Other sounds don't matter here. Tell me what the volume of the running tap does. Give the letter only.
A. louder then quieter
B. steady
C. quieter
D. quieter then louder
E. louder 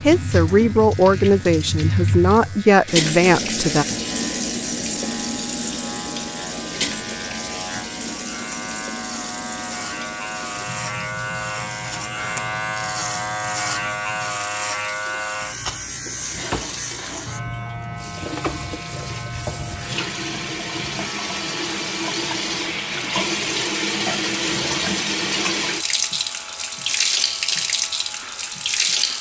D.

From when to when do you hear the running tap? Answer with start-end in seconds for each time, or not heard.
0.0-29.1.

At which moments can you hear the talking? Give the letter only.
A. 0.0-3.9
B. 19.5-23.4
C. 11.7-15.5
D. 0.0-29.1
A.